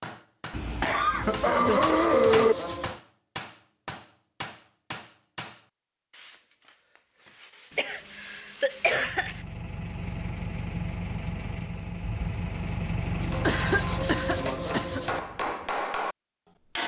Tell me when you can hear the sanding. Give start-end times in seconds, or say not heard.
1.1-3.0, 6.1-9.1, 13.2-15.2.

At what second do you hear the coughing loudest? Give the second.
2 s.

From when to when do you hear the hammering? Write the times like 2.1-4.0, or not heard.
0.0-5.7, 13.1-16.1.